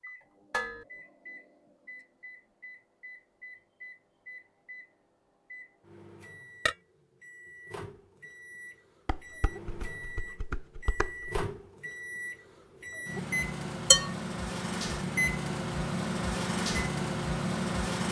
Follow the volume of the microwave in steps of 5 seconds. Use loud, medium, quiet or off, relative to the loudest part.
quiet, quiet, medium, loud.